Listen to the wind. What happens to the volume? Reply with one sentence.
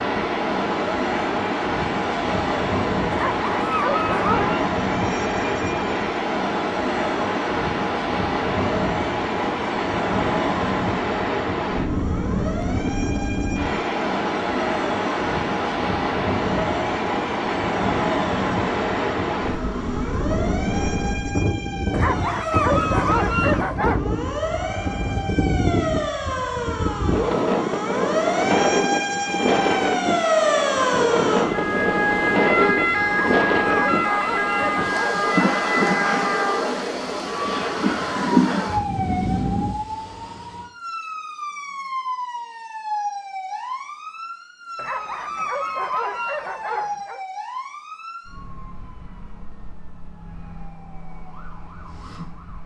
The loudness of the wind stays about the same.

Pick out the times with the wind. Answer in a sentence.
You can hear the wind from 0.0 to 39.8 s.